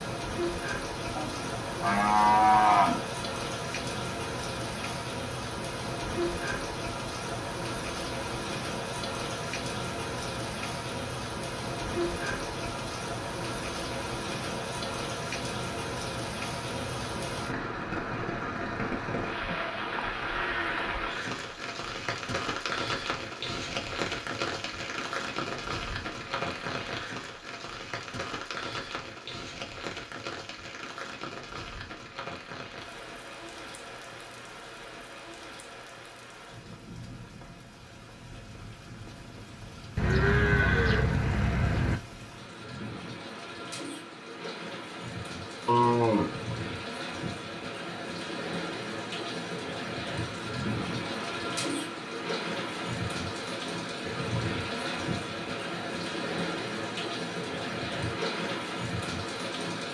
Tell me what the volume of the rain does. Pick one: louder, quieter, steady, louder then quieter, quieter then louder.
quieter then louder.